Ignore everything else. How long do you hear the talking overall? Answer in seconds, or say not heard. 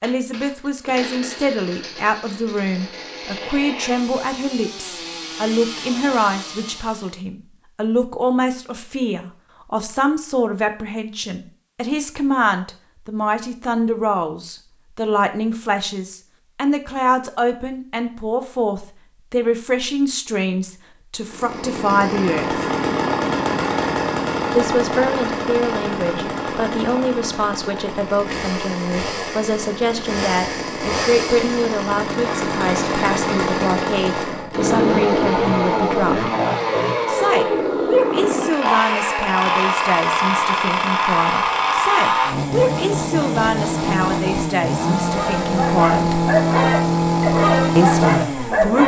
45 s.